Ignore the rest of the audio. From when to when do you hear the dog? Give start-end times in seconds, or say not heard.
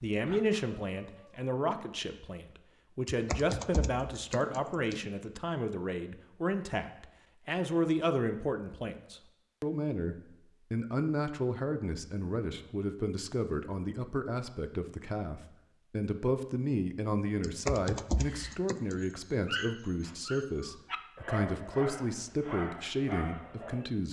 0.1-1.5, 18.2-23.9.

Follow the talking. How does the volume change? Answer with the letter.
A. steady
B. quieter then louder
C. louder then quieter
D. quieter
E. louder
A.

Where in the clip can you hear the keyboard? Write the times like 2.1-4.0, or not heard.
3.0-5.0, 17.4-19.0.